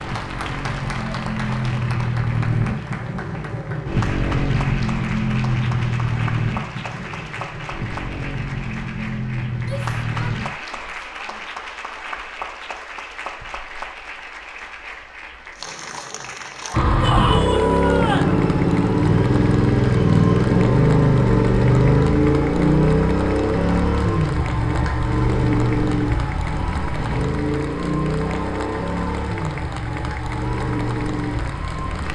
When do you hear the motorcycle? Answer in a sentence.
The motorcycle can be heard from 0.0 to 10.6 s and from 16.7 to 32.1 s.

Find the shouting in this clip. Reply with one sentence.
The shouting can be heard from 9.6 to 11.4 s and from 17.0 to 18.4 s.